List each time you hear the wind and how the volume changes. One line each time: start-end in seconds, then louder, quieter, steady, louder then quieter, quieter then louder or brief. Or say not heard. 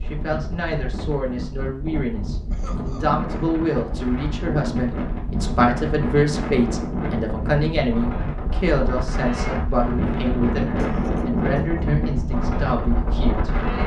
0.0-13.8 louder.